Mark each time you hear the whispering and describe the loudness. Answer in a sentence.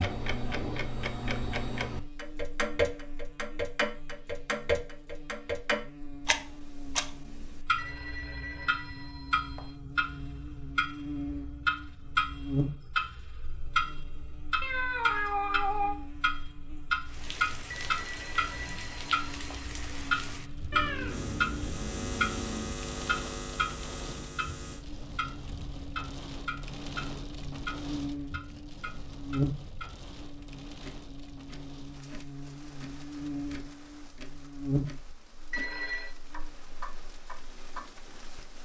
You can't hear the whispering here.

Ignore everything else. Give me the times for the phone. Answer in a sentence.
The phone can be heard from 7.8 to 9.8 s, from 17.7 to 19.6 s and from 35.5 to 36.1 s.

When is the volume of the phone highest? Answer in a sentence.
The loudest moment of the phone is at 36 seconds.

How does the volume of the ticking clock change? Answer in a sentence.
The volume of the ticking clock goes down.